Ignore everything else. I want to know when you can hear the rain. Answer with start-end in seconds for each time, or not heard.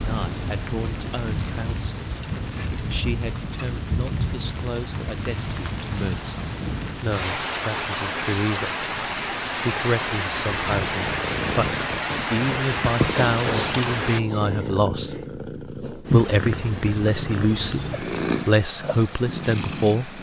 0.0-14.2.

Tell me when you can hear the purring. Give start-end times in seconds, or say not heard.
10.5-20.1.